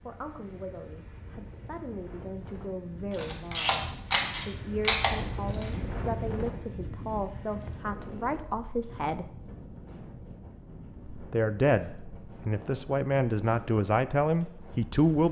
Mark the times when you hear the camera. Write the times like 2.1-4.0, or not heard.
3.1-5.7.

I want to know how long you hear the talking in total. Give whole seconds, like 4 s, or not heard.
13 s.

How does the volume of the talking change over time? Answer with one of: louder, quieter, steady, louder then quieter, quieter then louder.
louder.